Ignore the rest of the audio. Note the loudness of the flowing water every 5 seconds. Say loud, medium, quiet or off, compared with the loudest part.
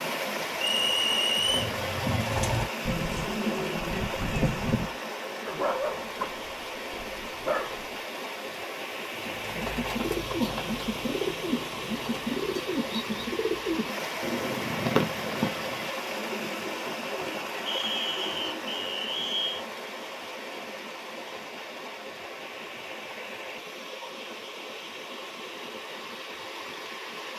loud, loud, loud, loud, medium, medium.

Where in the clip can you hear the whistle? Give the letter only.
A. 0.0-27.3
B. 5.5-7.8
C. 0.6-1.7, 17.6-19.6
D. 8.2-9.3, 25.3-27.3
C.